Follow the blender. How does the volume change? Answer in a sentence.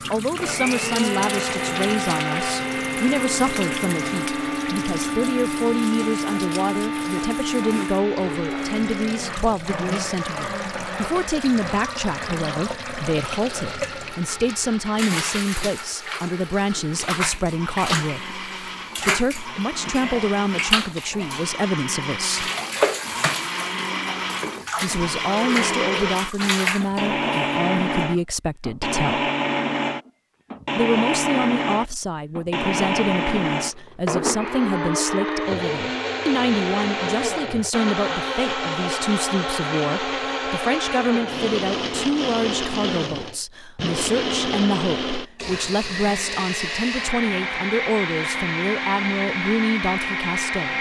The volume of the blender goes down, then up.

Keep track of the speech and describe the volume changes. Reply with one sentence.
The volume of the speech stays about the same.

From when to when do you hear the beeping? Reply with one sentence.
The beeping can't be heard in this clip.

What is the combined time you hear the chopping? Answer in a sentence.
The chopping can't be heard in this clip.